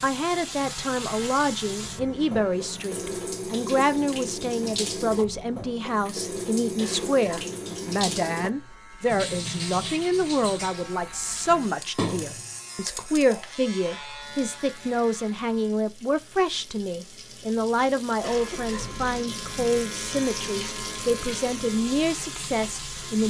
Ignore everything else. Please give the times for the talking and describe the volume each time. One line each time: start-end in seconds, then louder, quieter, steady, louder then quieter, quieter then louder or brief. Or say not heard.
0.0-23.2 steady.